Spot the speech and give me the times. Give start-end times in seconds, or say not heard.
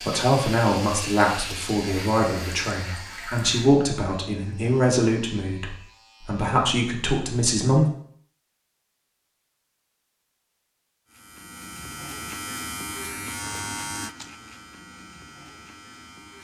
0.0-7.8.